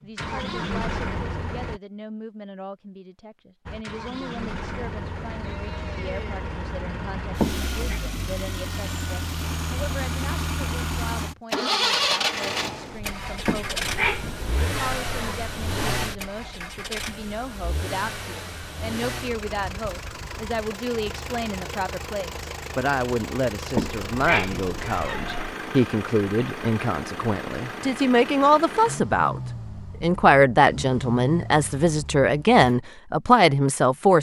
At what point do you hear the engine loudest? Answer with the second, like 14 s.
12 s.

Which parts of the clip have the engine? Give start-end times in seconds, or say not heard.
0.0-1.8, 3.6-32.6.